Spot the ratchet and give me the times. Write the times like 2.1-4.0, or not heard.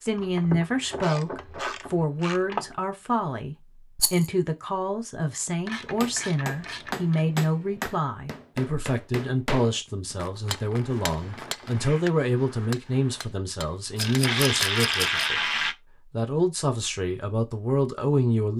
0.1-2.7, 5.7-7.2, 10.2-11.8, 13.9-15.8.